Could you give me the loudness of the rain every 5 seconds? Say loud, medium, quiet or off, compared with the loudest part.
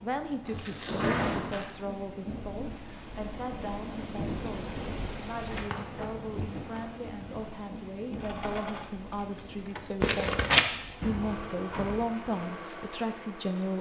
loud, loud, medium.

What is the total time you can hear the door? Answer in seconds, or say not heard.
2 s.